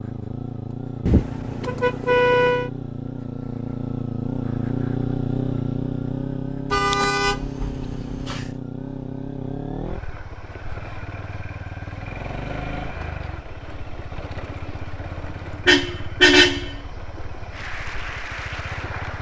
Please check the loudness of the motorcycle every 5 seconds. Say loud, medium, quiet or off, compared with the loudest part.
loud, loud, medium, medium.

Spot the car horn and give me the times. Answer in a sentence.
You can hear the car horn from 1.1 to 2.7 s, from 6.7 to 8.6 s and from 15.7 to 16.8 s.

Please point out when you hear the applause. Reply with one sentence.
The applause can be heard from 17.5 to 19.1 s.